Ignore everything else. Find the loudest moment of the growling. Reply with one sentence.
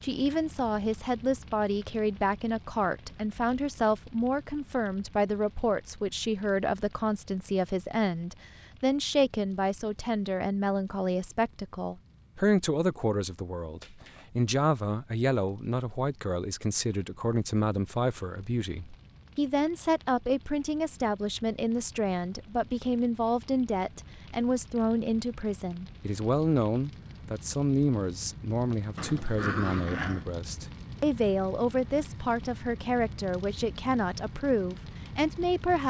The volume of the growling peaks at 30 seconds.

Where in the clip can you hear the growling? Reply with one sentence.
You can hear the growling from 13.8 to 14.2 s and from 28.9 to 30.2 s.